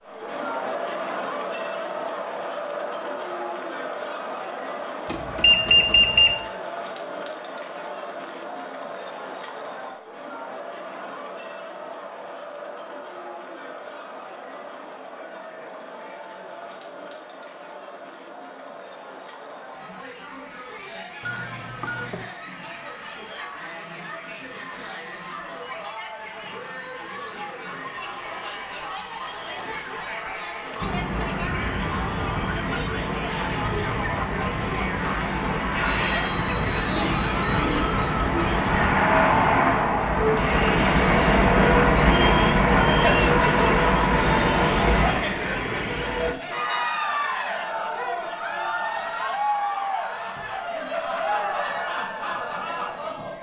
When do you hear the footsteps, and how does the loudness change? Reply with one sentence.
The footsteps can't be heard in this clip.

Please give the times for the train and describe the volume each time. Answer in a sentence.
You can hear the train from 30.8 to 46.4 s, getting louder.